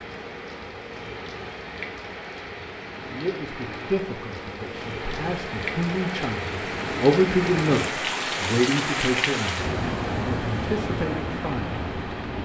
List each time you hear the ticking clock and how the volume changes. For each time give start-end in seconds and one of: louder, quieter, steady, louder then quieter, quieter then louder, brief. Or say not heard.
not heard.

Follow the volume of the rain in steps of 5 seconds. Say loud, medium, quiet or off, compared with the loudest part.
medium, loud, loud.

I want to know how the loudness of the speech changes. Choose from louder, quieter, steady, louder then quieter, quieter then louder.
louder then quieter.